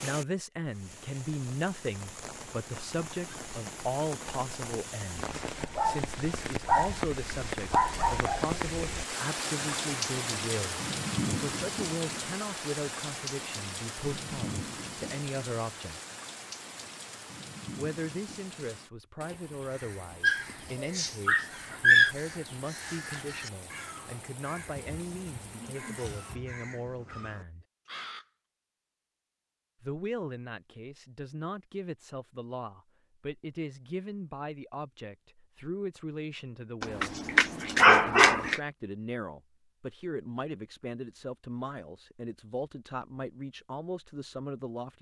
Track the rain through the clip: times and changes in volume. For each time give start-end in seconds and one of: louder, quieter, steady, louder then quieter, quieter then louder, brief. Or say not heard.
0.0-26.4 louder then quieter.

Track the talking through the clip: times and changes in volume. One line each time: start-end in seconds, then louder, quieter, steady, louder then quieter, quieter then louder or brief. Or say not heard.
0.0-16.0 steady
17.8-27.6 steady
29.8-37.1 steady
37.9-44.9 steady.